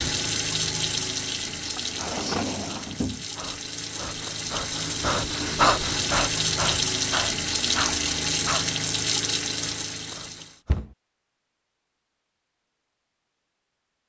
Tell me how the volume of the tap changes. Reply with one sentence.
The loudness of the tap goes down, then up.